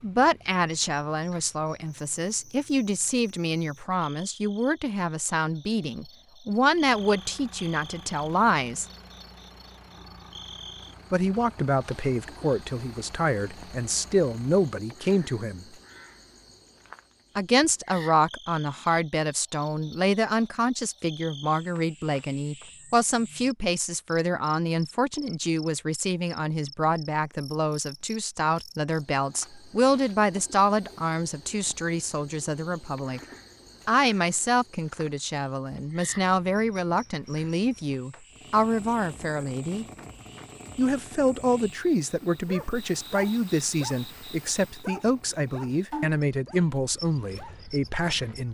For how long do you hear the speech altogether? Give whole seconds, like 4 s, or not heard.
43 s.